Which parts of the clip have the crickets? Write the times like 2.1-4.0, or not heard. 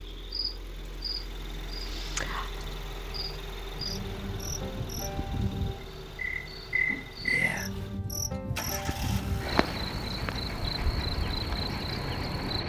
0.1-12.6.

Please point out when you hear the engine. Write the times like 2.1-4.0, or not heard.
0.0-12.4.